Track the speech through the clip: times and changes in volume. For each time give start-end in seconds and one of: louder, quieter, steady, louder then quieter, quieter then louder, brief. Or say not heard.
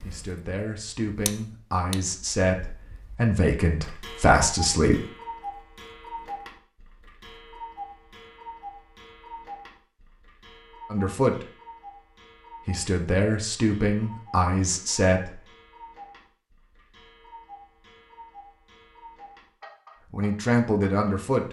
0.1-5.0 louder
10.9-11.4 brief
12.7-15.4 brief
20.1-21.4 brief.